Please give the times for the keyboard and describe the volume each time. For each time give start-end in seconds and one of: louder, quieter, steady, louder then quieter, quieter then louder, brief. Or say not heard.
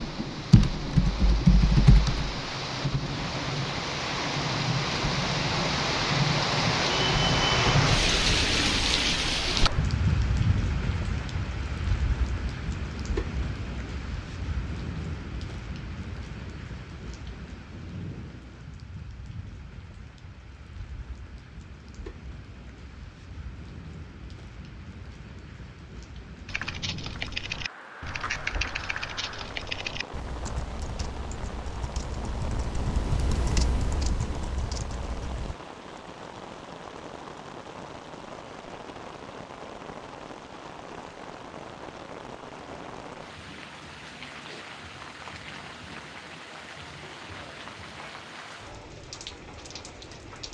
0.0-2.3 brief
26.4-35.5 quieter then louder.